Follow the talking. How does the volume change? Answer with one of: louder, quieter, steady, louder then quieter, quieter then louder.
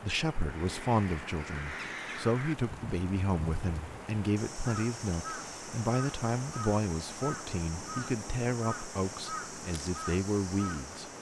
steady.